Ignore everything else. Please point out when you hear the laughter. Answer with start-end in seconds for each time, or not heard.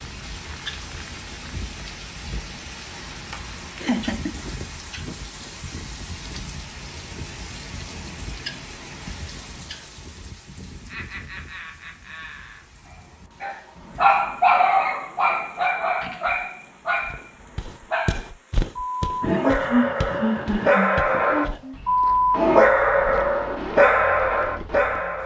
3.3-4.3, 10.9-12.6, 19.2-21.8.